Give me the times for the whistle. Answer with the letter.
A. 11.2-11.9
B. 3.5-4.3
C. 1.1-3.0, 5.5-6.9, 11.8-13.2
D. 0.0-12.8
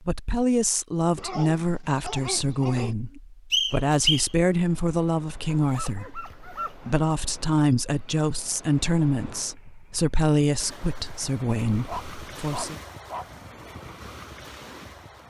B.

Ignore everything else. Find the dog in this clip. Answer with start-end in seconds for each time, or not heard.
1.1-3.0, 5.5-6.9, 11.8-13.2.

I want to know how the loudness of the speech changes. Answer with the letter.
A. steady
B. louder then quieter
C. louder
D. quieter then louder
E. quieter
A.